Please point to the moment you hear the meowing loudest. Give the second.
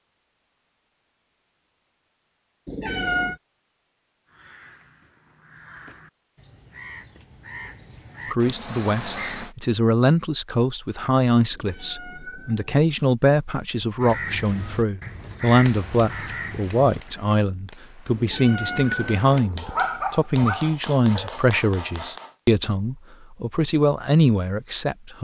3 s.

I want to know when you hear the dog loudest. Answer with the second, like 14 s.
20 s.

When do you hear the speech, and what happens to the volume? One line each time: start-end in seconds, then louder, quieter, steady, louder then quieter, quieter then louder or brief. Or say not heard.
8.3-25.1 steady.